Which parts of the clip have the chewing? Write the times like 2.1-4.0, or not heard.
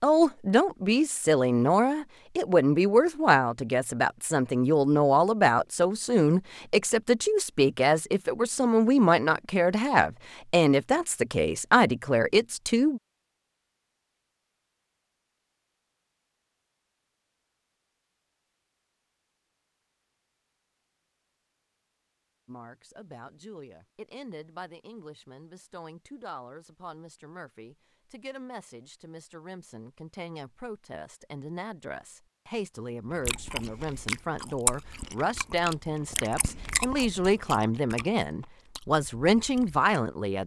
33.1-39.9.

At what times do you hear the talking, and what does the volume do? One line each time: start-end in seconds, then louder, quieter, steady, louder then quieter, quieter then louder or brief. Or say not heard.
0.0-13.0 steady
22.4-40.4 louder.